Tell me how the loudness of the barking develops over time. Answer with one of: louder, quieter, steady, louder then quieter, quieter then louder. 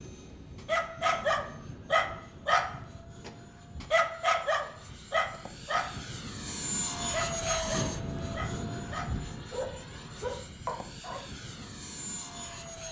quieter.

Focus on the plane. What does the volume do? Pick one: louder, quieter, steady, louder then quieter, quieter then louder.
louder then quieter.